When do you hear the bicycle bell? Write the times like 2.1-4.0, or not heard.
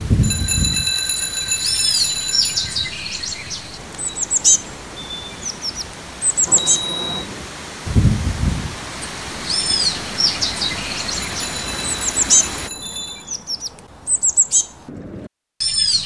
0.2-2.9, 6.5-7.3, 11.4-13.2.